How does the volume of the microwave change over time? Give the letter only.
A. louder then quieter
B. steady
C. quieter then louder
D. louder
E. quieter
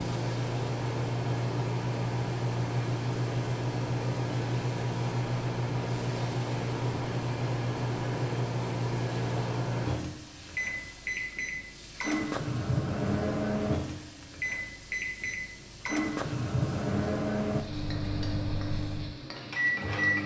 B.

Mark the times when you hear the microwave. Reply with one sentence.
You can hear the microwave from 0.0 to 20.2 s.